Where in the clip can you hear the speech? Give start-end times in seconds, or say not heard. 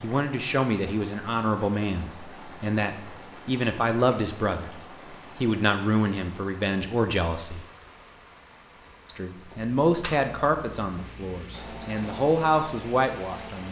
0.0-4.8, 5.4-7.7, 9.1-13.6.